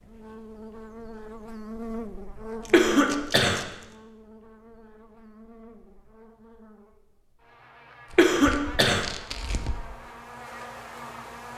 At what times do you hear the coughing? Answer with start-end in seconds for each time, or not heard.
2.7-3.6, 8.2-9.1.